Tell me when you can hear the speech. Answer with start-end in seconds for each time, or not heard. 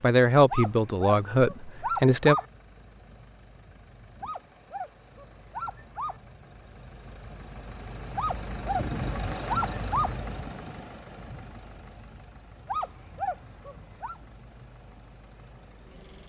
0.0-2.4.